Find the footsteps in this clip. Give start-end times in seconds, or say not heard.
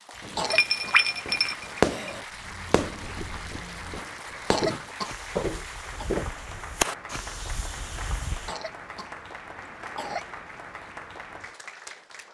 2.2-6.9.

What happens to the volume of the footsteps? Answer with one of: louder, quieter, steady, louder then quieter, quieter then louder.
louder.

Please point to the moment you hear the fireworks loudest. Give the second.
2 s.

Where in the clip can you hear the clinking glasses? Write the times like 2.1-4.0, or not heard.
0.5-2.2.